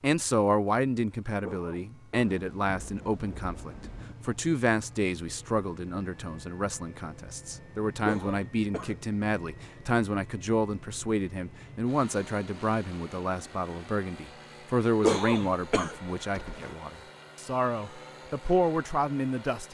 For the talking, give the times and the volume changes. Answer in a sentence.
The talking can be heard from 0.0 to 19.6 s, at a steady volume.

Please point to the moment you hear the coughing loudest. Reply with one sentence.
The loudest moment of the coughing is at 15 seconds.